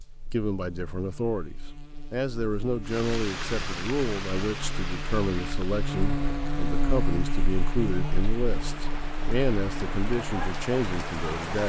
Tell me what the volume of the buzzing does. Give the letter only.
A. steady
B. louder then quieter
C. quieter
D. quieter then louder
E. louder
B.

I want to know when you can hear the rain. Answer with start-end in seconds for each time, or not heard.
2.8-11.6.